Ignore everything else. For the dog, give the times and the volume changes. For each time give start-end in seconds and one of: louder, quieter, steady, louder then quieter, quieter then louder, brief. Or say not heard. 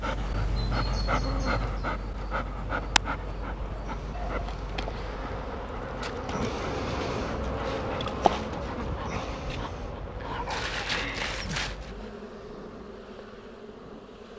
0.0-12.1 quieter then louder.